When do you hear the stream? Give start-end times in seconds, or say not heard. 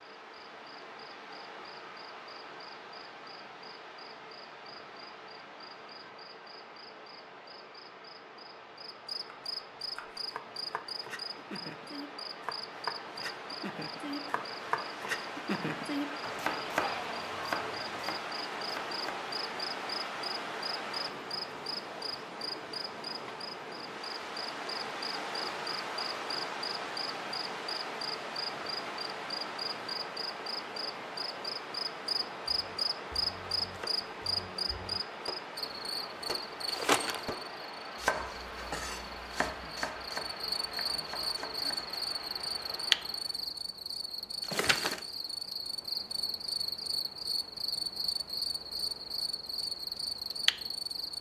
0.0-43.5.